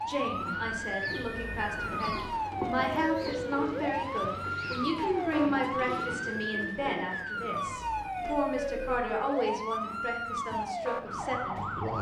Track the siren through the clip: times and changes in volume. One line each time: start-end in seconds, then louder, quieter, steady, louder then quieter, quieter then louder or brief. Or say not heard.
0.0-11.9 steady.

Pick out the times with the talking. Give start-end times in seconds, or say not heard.
0.0-11.9.